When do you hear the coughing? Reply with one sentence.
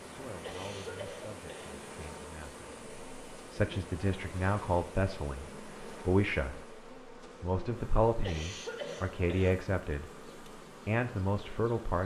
You can hear the coughing from 0.4 to 1.9 s and from 8.2 to 9.6 s.